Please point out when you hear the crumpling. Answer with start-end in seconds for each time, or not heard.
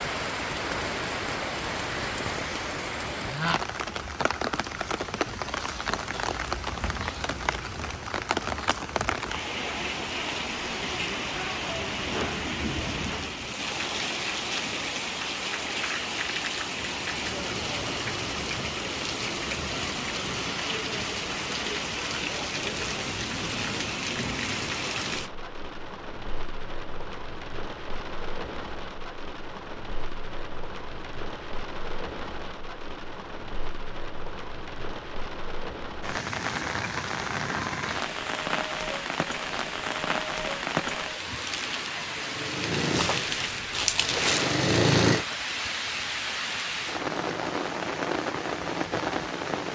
43.0-44.5.